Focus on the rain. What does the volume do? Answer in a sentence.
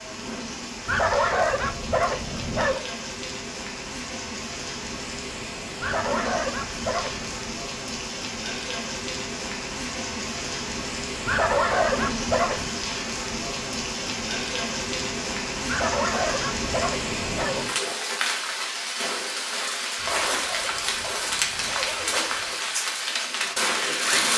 The loudness of the rain goes up.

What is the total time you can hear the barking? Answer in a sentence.
The barking can be heard for 10 seconds in total.